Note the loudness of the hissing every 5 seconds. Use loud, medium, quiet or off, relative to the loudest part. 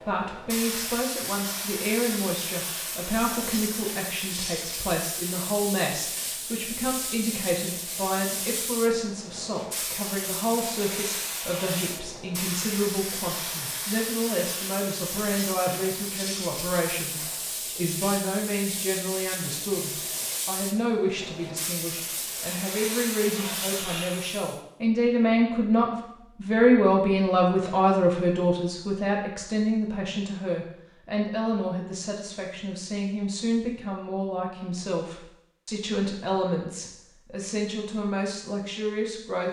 loud, loud, loud, loud, loud, off, off, off.